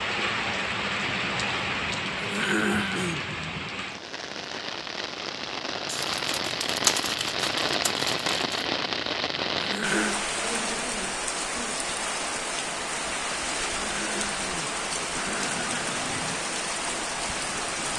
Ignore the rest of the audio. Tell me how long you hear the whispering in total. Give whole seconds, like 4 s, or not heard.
not heard.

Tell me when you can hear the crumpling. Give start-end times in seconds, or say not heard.
5.8-8.7.